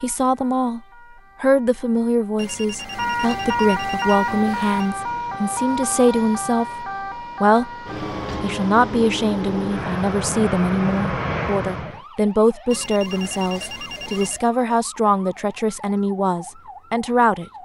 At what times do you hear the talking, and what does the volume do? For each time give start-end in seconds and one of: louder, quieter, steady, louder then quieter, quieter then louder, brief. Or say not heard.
0.0-0.8 brief
1.4-7.7 steady
8.4-17.4 steady.